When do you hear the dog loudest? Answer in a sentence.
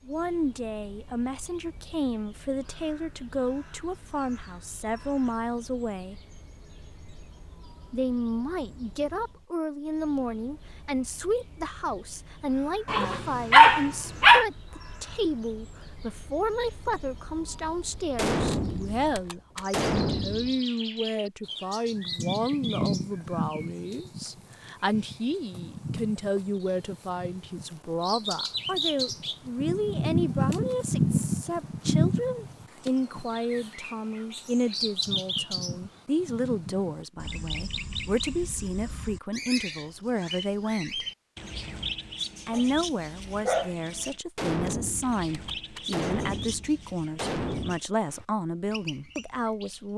The volume of the dog peaks at 14 seconds.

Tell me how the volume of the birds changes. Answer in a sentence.
The loudness of the birds goes up, then down.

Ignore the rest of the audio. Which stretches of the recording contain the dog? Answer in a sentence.
You can hear the dog from 12.8 to 14.4 s and from 42.5 to 43.8 s.